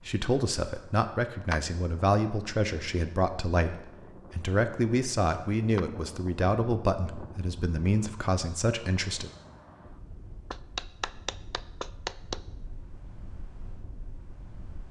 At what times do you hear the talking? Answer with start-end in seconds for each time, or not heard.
0.1-9.3.